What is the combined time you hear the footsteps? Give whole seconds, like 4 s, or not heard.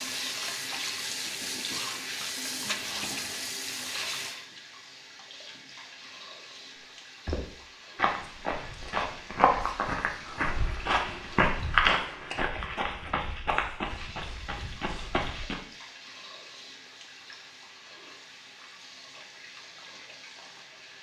8 s.